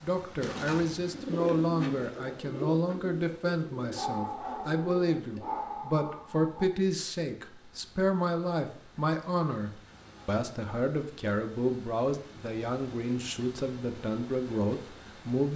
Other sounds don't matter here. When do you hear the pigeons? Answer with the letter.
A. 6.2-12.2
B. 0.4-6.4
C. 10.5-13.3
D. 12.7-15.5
B.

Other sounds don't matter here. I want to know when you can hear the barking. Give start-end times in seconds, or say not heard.
3.9-6.7.